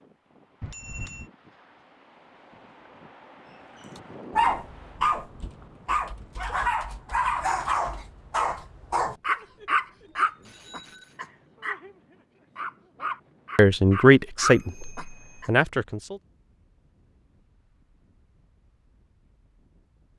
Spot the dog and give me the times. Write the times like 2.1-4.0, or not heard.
4.0-15.5.